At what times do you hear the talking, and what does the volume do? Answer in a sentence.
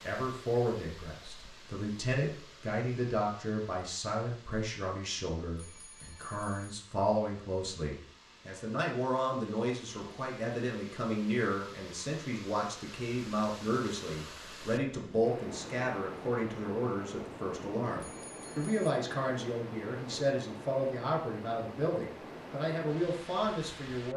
The talking can be heard from 0.0 to 24.1 s, at a steady volume.